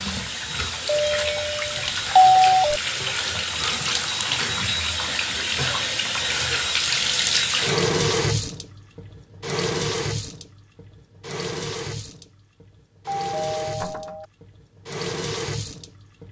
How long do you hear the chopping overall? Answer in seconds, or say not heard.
not heard.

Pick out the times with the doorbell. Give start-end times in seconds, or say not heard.
0.9-2.8, 13.1-14.2.